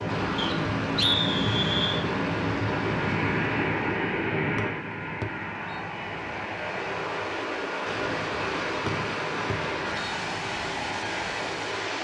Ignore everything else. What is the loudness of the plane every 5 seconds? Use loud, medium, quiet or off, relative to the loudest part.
loud, medium, medium.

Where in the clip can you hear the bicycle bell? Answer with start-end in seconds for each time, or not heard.
not heard.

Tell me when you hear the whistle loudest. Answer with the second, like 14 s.
1 s.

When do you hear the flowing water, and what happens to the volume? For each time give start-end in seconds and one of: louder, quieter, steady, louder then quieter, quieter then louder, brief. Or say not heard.
0.0-11.9 quieter then louder.